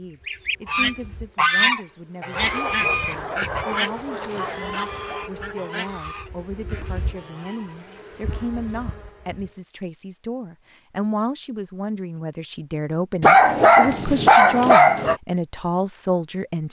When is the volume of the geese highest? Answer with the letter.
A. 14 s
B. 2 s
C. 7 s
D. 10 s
B.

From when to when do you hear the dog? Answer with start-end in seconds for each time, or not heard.
2.3-5.2, 13.2-15.2.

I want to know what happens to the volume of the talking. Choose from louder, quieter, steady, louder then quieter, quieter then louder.
louder.